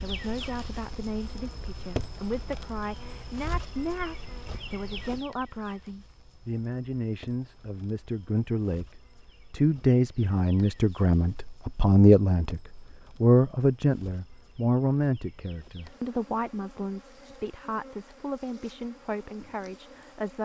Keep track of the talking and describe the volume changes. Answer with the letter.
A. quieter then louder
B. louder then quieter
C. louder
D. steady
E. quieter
B.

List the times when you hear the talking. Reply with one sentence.
You can hear the talking from 0.0 to 8.8 s and from 9.5 to 20.4 s.